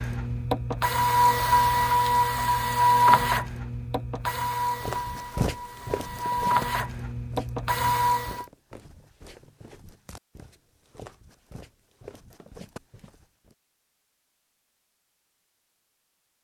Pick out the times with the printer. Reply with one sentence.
The printer can be heard from 0.0 to 8.4 s.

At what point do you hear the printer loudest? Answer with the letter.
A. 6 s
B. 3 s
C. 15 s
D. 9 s
B.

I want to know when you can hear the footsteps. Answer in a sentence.
You can hear the footsteps from 4.8 to 13.6 s.